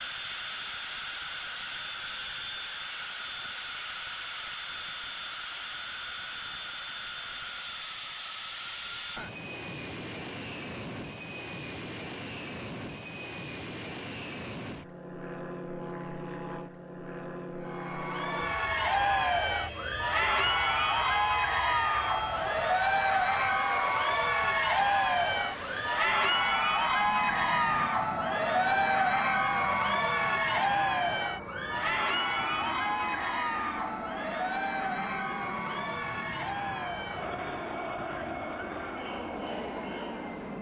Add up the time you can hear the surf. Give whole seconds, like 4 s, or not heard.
not heard.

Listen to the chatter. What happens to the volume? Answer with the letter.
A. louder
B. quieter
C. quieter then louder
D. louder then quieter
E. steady
B.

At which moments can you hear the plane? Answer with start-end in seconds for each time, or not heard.
0.0-40.5.